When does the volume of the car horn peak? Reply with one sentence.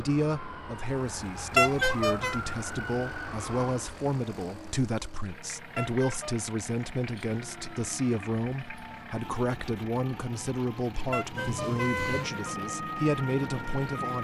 The loudest moment of the car horn is at 2 seconds.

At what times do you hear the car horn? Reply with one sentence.
The car horn can be heard from 1.6 to 2.4 s, from 5.8 to 6.3 s and from 11.1 to 12.6 s.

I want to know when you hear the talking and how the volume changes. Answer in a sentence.
The talking can be heard from 0.0 to 14.1 s, at a steady volume.